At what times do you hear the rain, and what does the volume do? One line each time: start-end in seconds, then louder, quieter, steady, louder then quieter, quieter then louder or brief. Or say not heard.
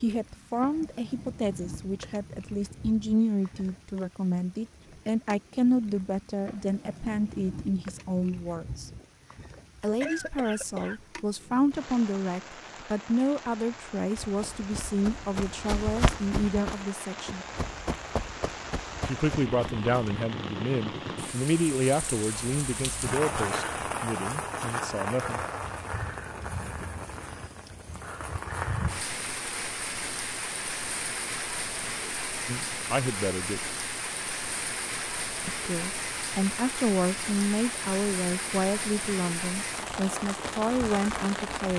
0.0-41.7 louder.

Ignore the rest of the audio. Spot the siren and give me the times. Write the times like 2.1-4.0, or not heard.
not heard.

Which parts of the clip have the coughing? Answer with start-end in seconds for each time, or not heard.
9.6-11.0.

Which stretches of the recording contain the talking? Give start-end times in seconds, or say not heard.
0.0-8.9, 9.8-17.4, 19.1-25.4, 32.5-33.7, 35.5-41.7.